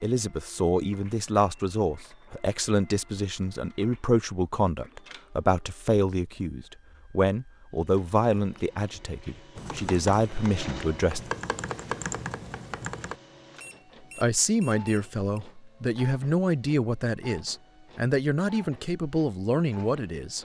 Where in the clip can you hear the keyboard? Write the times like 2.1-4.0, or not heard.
9.6-13.2.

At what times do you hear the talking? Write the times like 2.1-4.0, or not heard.
0.0-11.3, 14.2-20.3.